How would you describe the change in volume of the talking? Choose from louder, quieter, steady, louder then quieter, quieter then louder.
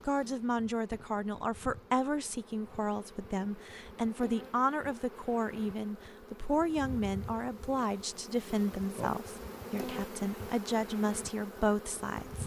steady.